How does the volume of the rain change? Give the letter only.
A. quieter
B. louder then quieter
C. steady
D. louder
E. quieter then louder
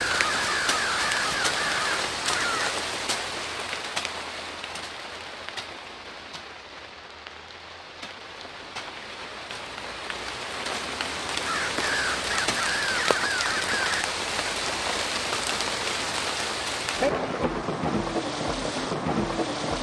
E.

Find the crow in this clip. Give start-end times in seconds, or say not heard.
0.0-2.8, 11.4-14.1.